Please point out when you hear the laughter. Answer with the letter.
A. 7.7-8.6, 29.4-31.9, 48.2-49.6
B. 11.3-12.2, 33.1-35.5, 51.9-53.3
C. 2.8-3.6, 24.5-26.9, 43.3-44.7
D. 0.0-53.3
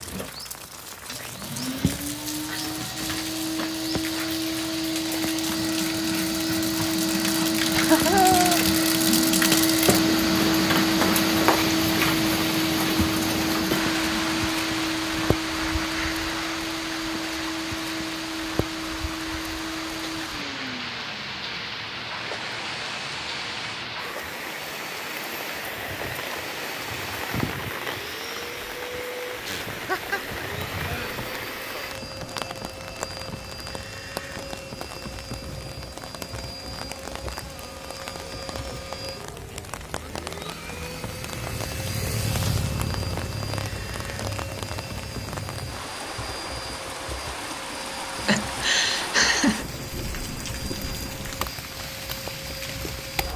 A.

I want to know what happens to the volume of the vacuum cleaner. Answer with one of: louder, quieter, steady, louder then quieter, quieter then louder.
quieter.